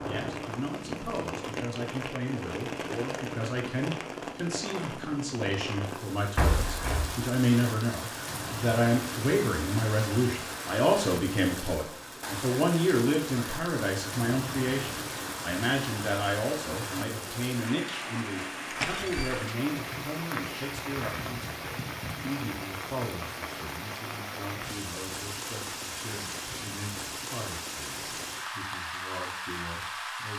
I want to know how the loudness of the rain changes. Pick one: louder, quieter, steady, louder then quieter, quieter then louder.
steady.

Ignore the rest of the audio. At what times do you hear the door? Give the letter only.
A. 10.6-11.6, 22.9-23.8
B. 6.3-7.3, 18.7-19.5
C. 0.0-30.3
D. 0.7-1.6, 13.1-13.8
B.